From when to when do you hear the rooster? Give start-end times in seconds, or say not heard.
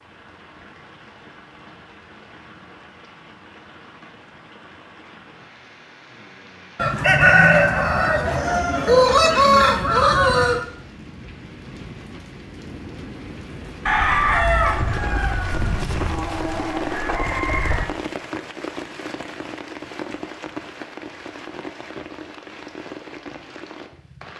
6.8-10.7, 13.8-17.9.